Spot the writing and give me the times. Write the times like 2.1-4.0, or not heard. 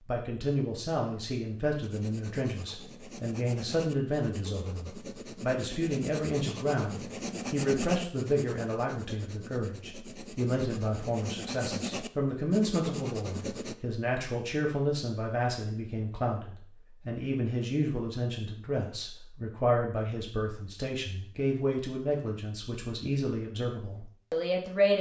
1.8-13.8.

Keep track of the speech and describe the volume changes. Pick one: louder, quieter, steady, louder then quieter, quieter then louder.
steady.